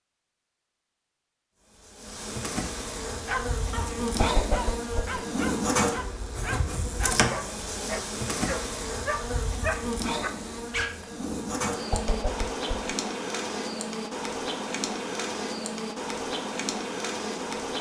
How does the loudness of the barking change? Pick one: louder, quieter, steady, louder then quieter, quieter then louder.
louder.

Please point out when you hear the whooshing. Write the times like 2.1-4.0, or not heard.
4.2-5.2, 11.9-12.9.